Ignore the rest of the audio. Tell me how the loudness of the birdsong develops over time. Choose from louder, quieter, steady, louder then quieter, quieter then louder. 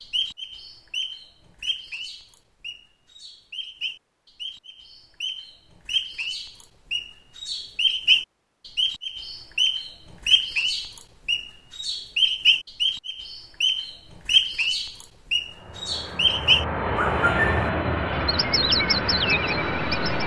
louder.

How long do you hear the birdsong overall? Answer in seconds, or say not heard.
20 s.